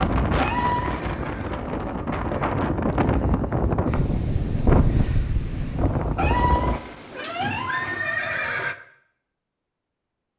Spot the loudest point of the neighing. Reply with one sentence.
The loudest moment of the neighing is at 8 seconds.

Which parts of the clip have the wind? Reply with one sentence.
The wind can be heard from 0.0 to 6.8 s.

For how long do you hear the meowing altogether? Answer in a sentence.
You can hear the meowing for 3 seconds altogether.